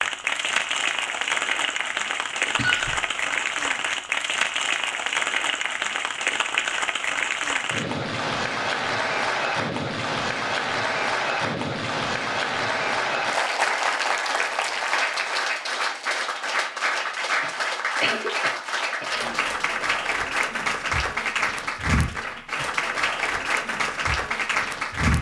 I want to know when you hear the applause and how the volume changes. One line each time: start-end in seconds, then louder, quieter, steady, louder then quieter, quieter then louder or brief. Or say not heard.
0.0-25.1 steady.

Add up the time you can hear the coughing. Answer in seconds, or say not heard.
2 s.